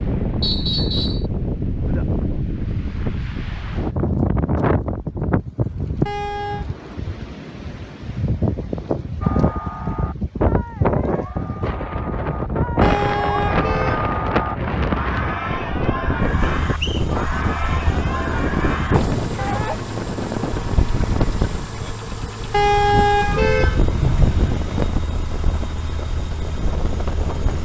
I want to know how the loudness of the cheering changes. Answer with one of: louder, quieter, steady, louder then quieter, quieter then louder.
louder.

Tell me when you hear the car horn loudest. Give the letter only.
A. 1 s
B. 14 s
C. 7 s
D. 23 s
D.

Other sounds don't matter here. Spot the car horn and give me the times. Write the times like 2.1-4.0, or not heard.
6.0-6.7, 12.8-14.1, 22.5-24.6.